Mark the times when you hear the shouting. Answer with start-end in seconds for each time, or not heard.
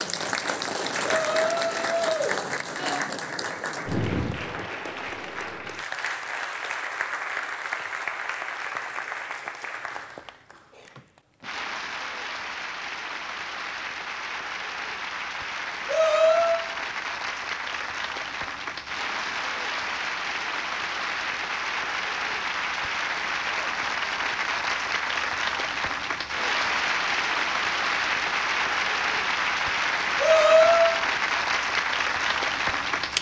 1.1-3.0, 15.8-16.7, 30.1-30.9.